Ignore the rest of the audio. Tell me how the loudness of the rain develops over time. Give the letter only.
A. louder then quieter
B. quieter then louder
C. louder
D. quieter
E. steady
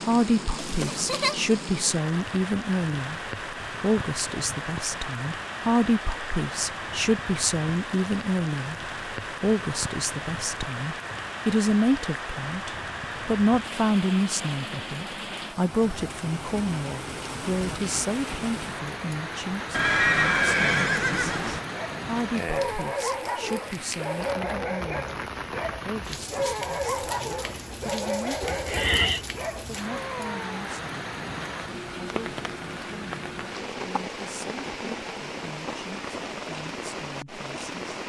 E.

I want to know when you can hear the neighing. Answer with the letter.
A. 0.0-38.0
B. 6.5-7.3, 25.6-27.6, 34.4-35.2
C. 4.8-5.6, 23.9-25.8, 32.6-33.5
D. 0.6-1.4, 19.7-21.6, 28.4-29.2
D.